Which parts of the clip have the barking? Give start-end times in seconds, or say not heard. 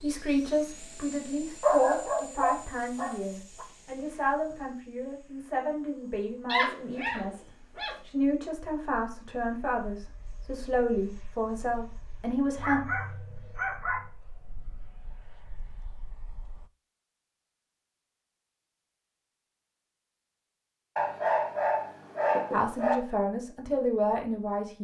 1.6-3.6, 6.5-8.0, 12.6-14.1, 20.9-22.9.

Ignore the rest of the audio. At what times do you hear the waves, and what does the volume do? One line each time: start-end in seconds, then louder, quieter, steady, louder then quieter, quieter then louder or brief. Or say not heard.
not heard.